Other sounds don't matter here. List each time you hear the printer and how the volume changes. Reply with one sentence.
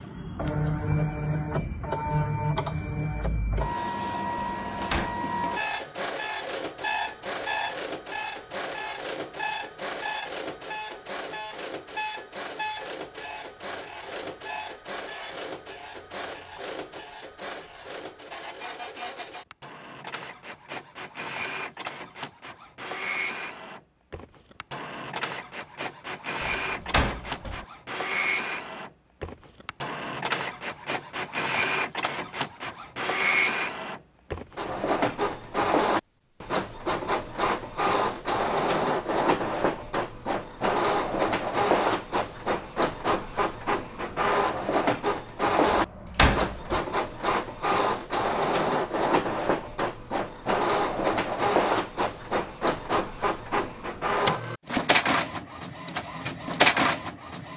You can hear the printer from 0.0 to 57.5 s, getting quieter then louder.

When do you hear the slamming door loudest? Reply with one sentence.
The loudest moment of the slamming door is at 46 seconds.